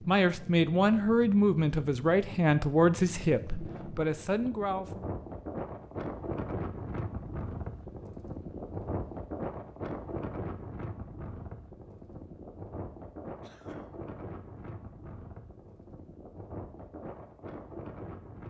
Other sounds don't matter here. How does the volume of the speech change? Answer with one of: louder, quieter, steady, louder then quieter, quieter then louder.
quieter.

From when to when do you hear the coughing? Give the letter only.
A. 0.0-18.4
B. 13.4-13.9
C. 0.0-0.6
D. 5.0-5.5
B.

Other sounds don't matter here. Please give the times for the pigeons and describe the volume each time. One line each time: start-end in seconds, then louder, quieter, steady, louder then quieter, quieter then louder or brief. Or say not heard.
not heard.